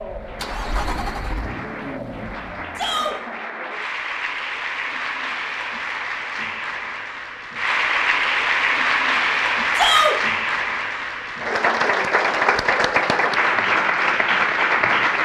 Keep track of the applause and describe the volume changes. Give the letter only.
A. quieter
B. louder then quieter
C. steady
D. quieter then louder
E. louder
E.